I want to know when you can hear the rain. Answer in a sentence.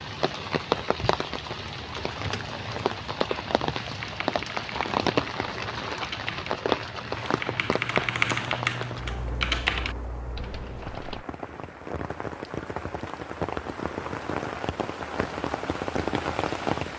The rain can be heard from 0.0 to 16.9 s.